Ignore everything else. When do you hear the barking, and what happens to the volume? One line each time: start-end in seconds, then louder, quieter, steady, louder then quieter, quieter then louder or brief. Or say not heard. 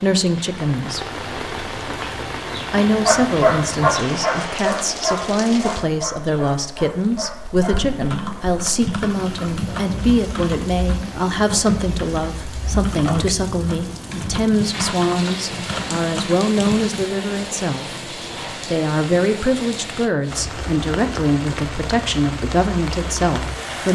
2.5-7.9 quieter.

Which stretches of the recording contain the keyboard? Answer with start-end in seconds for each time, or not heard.
7.6-17.1.